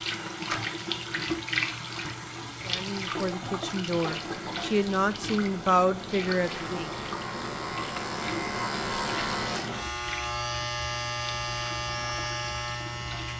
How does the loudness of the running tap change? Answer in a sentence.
The volume of the running tap goes down.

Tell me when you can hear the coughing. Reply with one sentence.
The coughing can be heard from 3.1 to 4.7 s.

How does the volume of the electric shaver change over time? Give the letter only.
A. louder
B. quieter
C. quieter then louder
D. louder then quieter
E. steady
A.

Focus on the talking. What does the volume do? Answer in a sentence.
The loudness of the talking goes up.